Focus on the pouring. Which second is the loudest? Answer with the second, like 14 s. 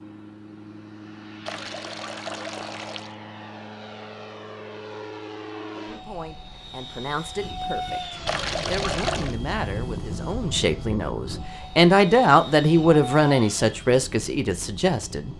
9 s.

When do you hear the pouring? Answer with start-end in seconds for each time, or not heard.
1.4-3.1, 8.2-9.3.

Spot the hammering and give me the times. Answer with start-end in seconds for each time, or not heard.
not heard.